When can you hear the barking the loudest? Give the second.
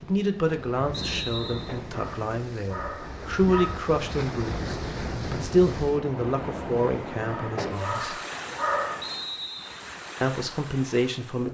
9 s.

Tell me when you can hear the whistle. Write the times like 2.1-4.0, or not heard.
0.9-1.8, 9.0-9.8.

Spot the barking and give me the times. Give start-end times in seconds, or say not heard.
1.4-3.8, 7.2-9.1.